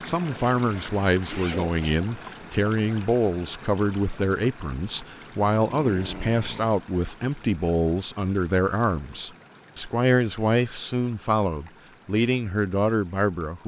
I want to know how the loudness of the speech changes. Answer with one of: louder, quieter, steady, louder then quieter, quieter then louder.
steady.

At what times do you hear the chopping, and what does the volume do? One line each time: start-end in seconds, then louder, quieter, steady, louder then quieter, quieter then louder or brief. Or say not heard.
not heard.